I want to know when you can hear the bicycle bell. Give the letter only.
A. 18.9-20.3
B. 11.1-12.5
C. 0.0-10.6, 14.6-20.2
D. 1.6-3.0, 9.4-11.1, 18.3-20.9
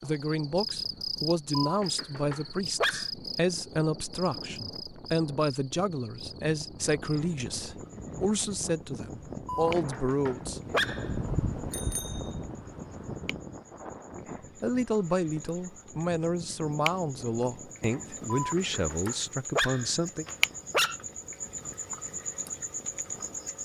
B.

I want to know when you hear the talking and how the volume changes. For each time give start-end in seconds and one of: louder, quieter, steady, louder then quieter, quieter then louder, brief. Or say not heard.
0.0-10.6 steady
14.6-20.2 steady.